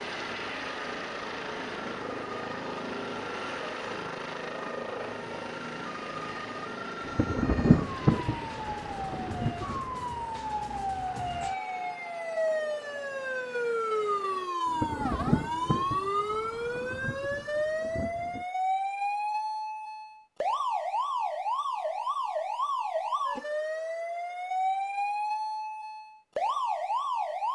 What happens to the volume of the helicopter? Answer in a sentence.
The volume of the helicopter goes down.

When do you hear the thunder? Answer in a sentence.
The thunder can be heard from 7.0 to 9.9 s and from 14.7 to 18.4 s.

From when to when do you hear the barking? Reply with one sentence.
The barking can't be heard in this clip.